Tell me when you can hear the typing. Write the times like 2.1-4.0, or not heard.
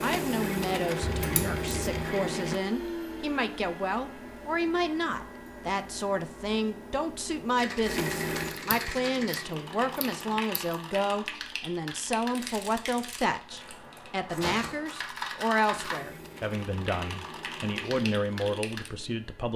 7.5-18.9.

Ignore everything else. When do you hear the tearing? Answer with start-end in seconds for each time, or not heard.
not heard.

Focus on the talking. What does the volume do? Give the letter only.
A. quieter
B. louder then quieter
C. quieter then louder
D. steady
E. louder
D.